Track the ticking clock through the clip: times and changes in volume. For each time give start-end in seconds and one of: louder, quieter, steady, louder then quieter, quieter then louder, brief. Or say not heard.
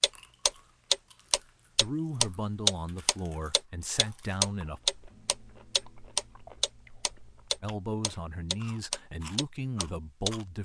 0.0-10.6 quieter.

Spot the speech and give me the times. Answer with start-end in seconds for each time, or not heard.
1.8-4.8, 7.6-10.6.